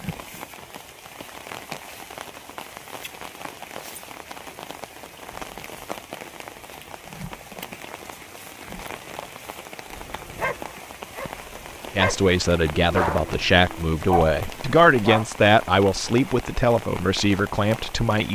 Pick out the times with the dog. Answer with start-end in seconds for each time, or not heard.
9.9-15.2.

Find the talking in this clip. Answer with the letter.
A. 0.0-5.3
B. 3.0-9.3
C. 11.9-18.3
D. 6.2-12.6
C.